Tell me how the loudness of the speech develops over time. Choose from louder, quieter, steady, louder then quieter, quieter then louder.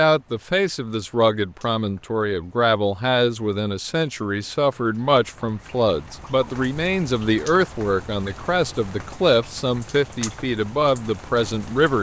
steady.